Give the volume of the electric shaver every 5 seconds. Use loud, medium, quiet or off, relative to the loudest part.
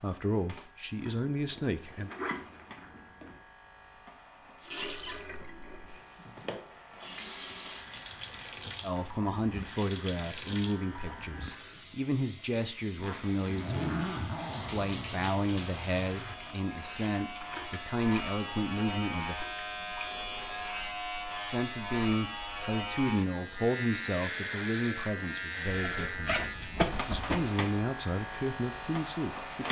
quiet, quiet, quiet, loud, loud, loud.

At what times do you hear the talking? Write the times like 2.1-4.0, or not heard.
0.0-2.1, 8.8-19.4, 21.4-29.6.